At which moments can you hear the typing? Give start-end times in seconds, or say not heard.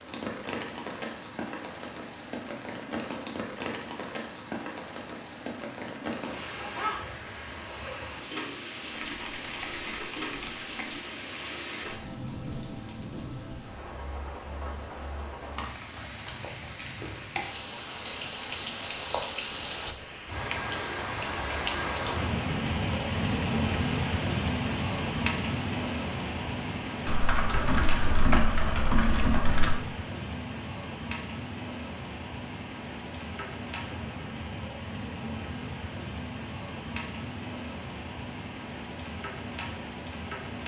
8.9-10.9, 27.1-29.8.